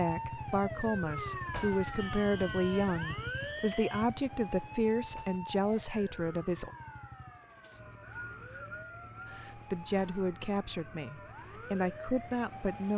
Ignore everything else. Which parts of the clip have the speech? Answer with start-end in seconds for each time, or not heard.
0.0-6.7, 9.3-12.9.